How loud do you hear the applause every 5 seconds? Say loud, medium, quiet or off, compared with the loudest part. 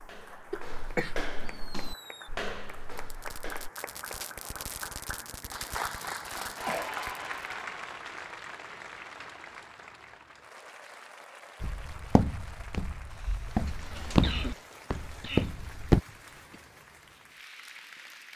medium, loud, medium, medium.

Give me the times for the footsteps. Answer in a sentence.
You can hear the footsteps from 0.0 to 3.7 s and from 11.6 to 16.0 s.